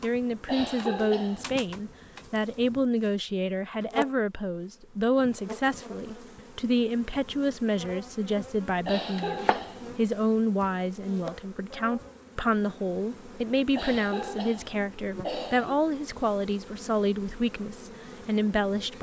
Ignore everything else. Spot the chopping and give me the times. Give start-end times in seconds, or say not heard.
9.2-9.7.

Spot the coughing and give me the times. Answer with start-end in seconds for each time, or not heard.
0.5-1.6, 8.8-10.1, 13.8-15.8.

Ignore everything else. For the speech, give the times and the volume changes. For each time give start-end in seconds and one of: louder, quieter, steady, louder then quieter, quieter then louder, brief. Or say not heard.
0.0-18.9 steady.